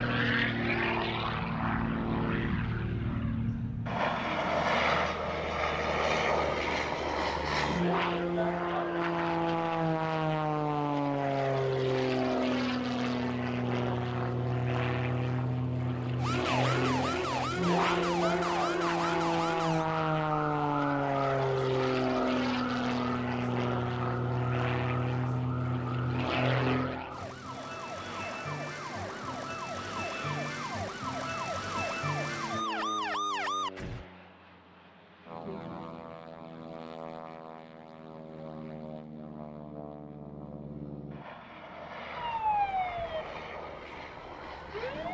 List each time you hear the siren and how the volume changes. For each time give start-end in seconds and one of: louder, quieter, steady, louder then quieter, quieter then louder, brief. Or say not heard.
16.1-34.0 quieter then louder
42.1-45.0 brief.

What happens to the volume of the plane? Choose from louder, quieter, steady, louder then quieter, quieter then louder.
quieter.